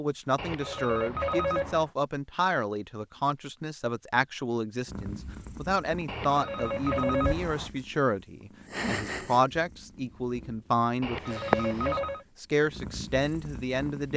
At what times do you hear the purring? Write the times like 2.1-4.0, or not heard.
4.8-14.1.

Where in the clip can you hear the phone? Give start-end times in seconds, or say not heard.
0.3-1.9, 6.0-7.7, 11.0-12.2.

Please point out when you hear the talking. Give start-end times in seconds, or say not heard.
0.0-14.1.